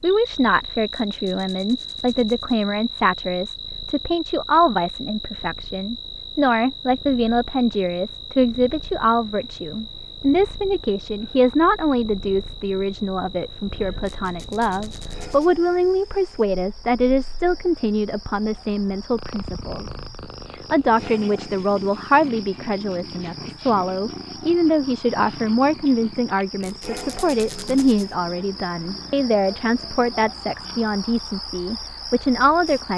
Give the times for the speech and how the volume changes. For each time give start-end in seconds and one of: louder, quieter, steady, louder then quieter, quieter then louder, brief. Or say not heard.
0.0-32.9 steady.